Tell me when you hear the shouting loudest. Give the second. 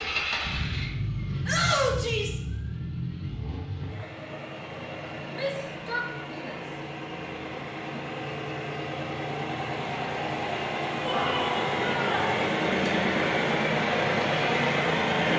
2 s.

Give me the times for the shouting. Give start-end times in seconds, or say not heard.
1.4-2.4, 5.3-6.6, 11.1-12.3.